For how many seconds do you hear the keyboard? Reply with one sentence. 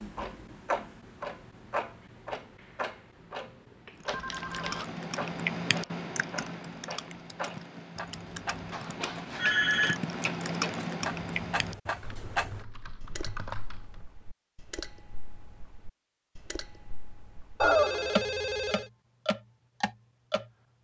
You can hear the keyboard for 10 seconds altogether.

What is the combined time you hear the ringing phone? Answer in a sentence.
The ringing phone can be heard for 3 seconds in total.